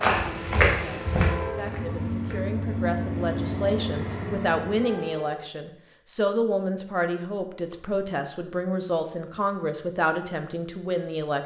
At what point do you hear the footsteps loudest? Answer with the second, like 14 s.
1 s.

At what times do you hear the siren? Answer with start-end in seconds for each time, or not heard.
not heard.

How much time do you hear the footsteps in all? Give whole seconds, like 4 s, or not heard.
2 s.